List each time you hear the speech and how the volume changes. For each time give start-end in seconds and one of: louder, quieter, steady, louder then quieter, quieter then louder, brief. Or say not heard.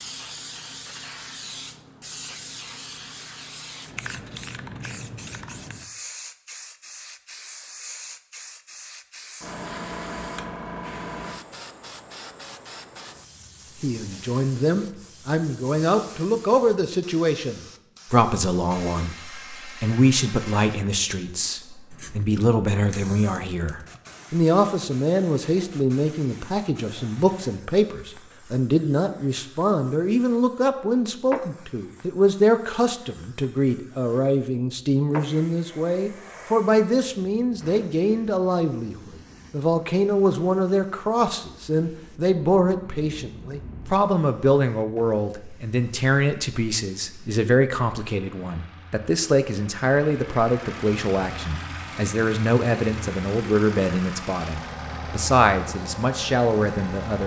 13.8-57.2 steady.